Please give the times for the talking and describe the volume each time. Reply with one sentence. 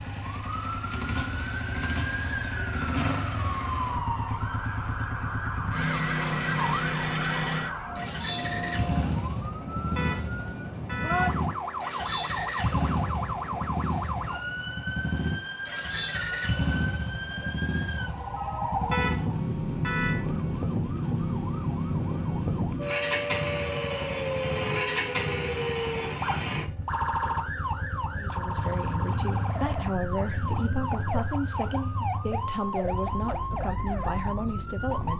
You can hear the talking from 28.1 to 35.1 s, at a steady volume.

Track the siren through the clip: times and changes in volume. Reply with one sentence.
The siren can be heard from 0.0 to 35.1 s, at a steady volume.